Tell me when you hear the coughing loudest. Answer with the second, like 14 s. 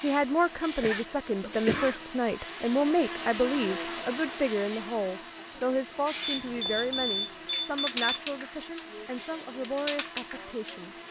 2 s.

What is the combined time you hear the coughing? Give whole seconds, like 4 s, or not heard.
2 s.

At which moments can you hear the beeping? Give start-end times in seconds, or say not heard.
6.2-8.2.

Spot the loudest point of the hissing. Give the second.
8 s.